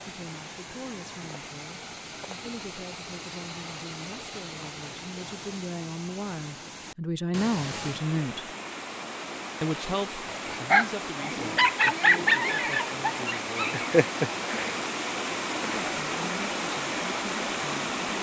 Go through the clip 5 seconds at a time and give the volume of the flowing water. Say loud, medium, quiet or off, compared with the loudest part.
medium, medium, loud, loud.